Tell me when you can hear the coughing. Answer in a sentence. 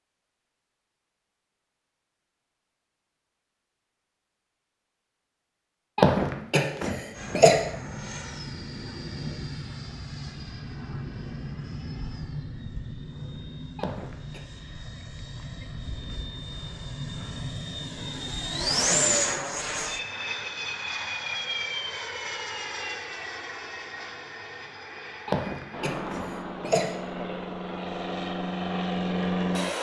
The coughing can be heard from 6.0 to 7.6 s, from 13.8 to 14.4 s and from 25.2 to 27.0 s.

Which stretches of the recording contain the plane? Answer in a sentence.
The plane can be heard from 7.2 to 29.7 s.